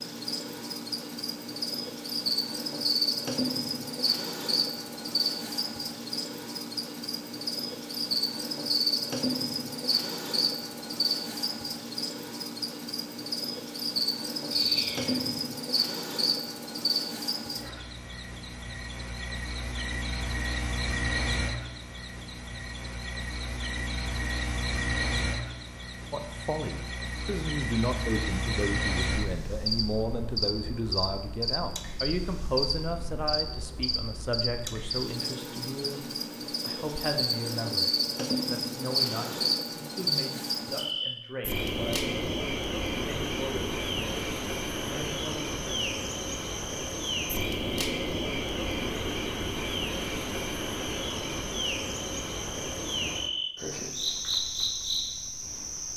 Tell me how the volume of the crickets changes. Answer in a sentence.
The volume of the crickets stays about the same.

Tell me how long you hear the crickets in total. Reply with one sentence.
You can hear the crickets for 56 seconds altogether.